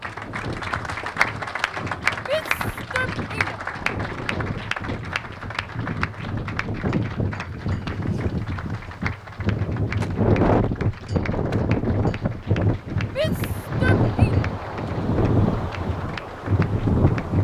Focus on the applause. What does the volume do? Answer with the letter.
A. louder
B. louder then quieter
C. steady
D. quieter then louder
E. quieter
E.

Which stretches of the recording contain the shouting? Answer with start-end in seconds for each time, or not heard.
2.2-3.5, 13.1-14.4.